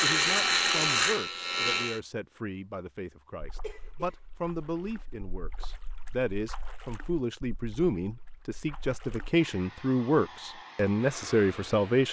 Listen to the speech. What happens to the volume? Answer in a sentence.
The volume of the speech goes up.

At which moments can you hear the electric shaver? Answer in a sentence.
The electric shaver can be heard from 0.0 to 2.0 s.